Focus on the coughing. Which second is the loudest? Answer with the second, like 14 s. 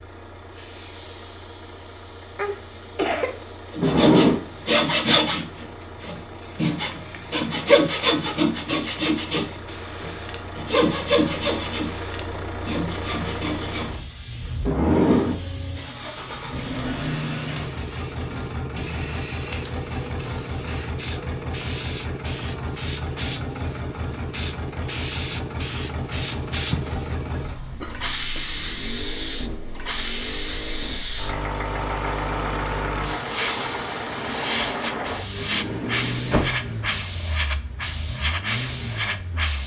3 s.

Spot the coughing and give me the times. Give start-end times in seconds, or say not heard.
2.4-3.4, 26.7-28.4.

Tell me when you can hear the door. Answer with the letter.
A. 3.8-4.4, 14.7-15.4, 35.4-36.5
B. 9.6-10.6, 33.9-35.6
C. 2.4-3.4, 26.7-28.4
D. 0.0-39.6
A.